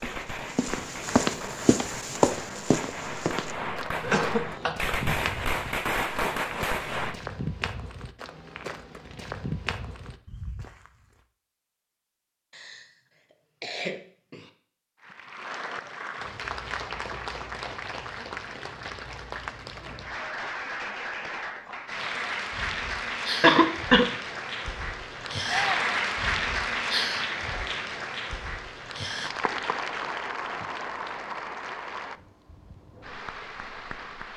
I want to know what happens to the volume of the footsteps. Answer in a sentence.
The loudness of the footsteps goes down.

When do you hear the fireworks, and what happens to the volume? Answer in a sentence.
You can hear the fireworks from 0.0 to 7.2 s, getting louder.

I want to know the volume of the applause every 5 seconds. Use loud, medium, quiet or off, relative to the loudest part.
off, off, off, medium, loud, loud, medium.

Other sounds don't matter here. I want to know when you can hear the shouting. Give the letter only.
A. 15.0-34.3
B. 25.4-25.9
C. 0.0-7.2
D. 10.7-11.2
B.